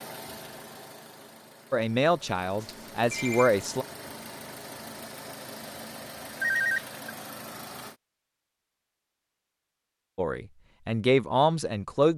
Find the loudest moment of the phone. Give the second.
7 s.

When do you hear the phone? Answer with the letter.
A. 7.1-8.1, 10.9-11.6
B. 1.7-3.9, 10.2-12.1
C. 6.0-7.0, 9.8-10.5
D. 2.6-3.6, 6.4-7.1
D.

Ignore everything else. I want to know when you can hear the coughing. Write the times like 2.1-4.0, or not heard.
not heard.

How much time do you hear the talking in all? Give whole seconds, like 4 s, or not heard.
4 s.